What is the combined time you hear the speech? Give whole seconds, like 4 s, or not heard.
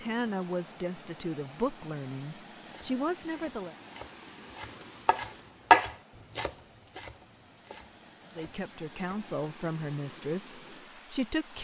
7 s.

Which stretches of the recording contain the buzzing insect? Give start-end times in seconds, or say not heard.
not heard.